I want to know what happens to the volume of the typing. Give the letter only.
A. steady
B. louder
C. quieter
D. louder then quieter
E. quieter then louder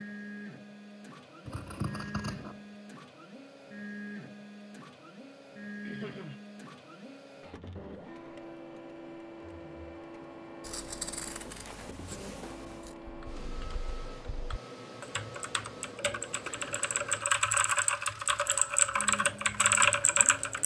B.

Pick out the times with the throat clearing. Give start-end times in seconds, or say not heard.
5.8-6.4.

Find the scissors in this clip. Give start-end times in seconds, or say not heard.
1.4-2.6, 10.6-12.9.